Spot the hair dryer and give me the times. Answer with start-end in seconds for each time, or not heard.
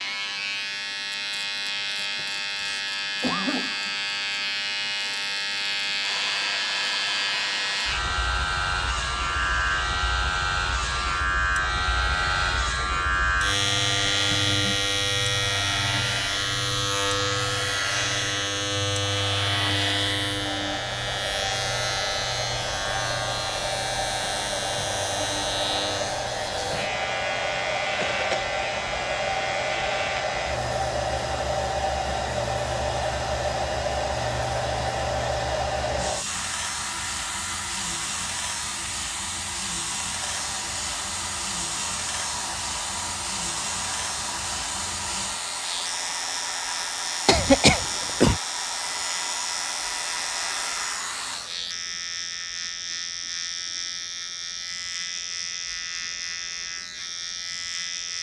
6.0-51.8.